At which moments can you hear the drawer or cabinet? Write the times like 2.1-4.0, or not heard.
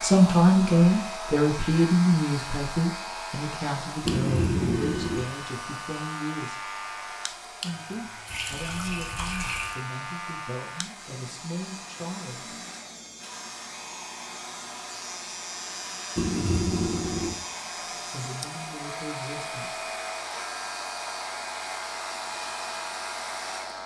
not heard.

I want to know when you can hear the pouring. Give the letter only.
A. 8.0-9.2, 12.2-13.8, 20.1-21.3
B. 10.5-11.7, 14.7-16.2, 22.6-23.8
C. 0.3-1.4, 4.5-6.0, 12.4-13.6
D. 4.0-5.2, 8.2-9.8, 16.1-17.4
D.